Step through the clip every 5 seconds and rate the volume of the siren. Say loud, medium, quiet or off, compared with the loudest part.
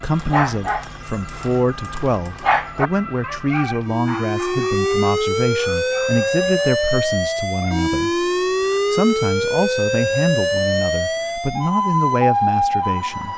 medium, loud, loud.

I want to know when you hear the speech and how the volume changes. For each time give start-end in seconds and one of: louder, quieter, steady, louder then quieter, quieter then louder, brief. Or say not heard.
0.0-13.3 steady.